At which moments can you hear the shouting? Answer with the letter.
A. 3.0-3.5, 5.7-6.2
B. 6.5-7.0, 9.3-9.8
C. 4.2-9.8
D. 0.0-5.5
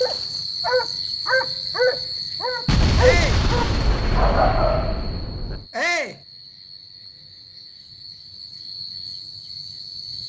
A.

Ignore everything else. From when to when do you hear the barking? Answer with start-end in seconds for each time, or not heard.
0.0-5.5.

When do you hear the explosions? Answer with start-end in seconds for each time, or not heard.
2.6-5.7.